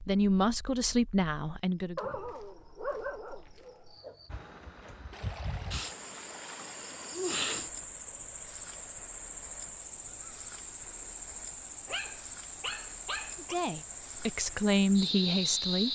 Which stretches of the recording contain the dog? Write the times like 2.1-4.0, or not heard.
1.9-4.2, 11.8-13.6.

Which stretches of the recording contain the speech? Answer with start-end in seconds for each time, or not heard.
0.1-2.1, 13.3-15.9.